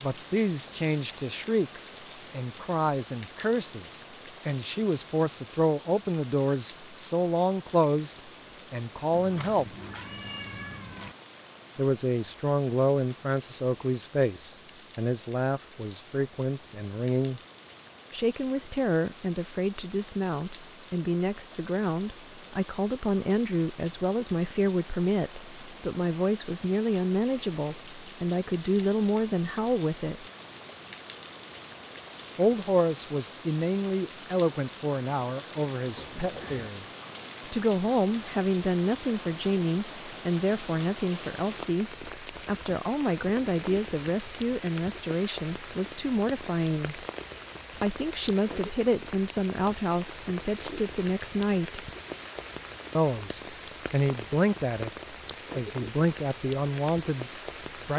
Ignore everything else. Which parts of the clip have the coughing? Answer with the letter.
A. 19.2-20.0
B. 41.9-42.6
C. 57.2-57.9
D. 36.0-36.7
D.